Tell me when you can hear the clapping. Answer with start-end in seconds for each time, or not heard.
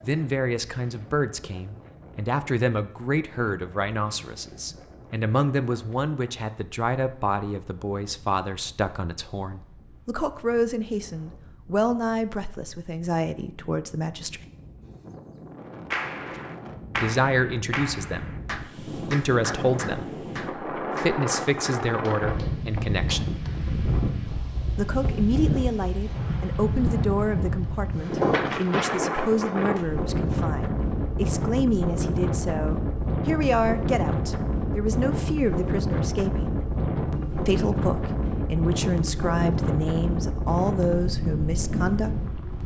15.9-23.5.